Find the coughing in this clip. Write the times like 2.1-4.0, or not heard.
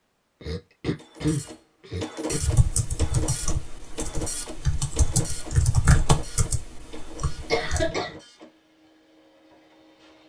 0.4-2.4, 7.5-8.2.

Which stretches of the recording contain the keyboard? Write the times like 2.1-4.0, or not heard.
2.3-7.9.